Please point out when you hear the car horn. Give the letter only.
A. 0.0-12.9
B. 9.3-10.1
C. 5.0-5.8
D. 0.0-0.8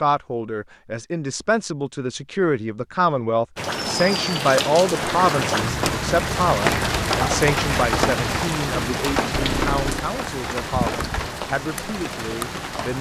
B.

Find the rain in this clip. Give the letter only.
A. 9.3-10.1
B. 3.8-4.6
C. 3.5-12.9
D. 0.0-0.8
C.